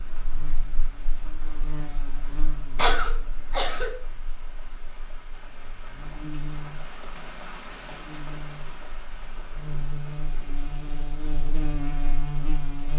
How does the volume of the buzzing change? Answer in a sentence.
The loudness of the buzzing goes down, then up.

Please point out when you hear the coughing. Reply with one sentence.
The coughing can be heard from 2.8 to 3.9 s.